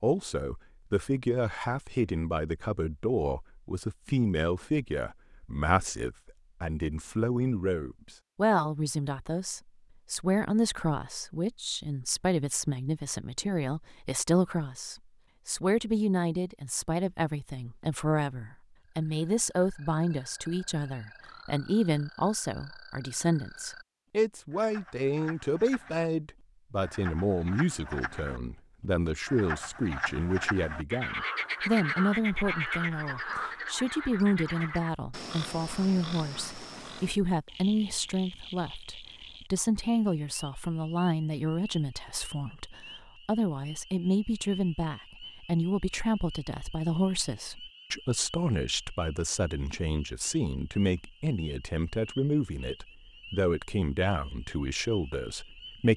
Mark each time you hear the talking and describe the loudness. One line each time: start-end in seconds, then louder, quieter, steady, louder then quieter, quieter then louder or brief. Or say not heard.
0.0-55.9 steady.